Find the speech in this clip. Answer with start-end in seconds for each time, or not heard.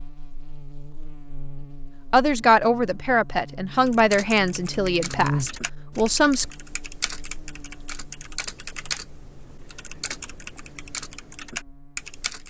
2.1-6.5.